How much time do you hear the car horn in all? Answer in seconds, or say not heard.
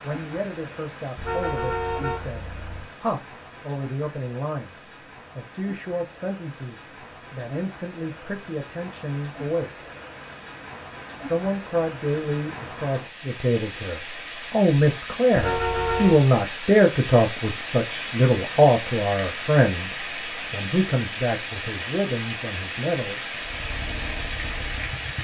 3 s.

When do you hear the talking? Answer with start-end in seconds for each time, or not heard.
0.0-9.8, 11.2-23.4.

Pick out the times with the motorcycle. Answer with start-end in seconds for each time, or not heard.
23.4-25.1.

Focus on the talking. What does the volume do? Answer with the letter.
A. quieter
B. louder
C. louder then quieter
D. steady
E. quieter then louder
C.